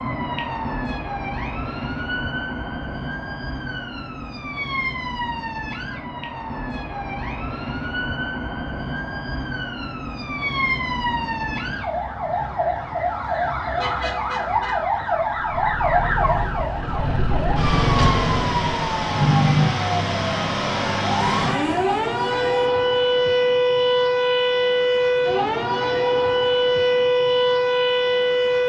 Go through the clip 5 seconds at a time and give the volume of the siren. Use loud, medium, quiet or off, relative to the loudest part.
medium, medium, medium, loud, loud, loud.